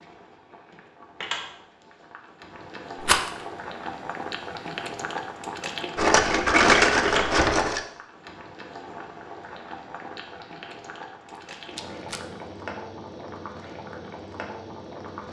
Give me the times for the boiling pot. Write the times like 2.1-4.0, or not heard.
0.0-15.2.